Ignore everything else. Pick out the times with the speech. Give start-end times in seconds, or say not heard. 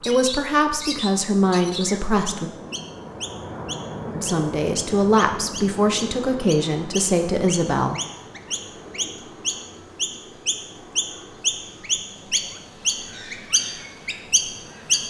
0.1-2.5, 4.2-8.0.